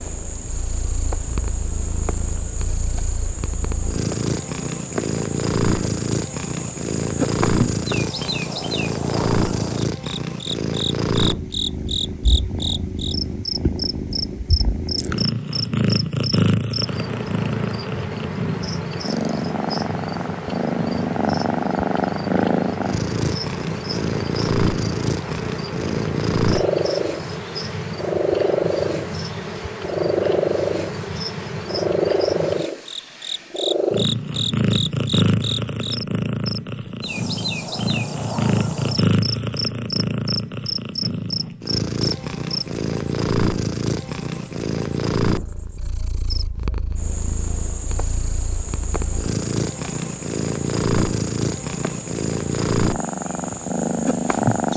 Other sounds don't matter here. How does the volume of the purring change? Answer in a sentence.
The volume of the purring stays about the same.